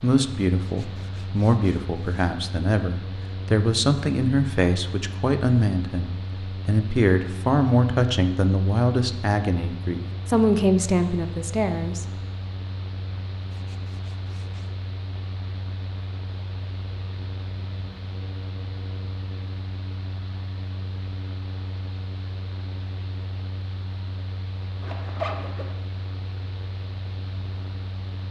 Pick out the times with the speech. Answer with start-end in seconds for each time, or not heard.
0.0-12.1.